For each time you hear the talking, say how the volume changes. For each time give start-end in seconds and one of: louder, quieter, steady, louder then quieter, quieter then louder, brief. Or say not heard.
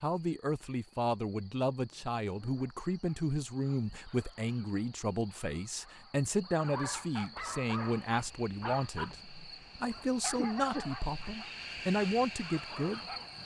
0.0-13.1 steady.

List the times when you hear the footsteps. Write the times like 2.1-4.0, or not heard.
not heard.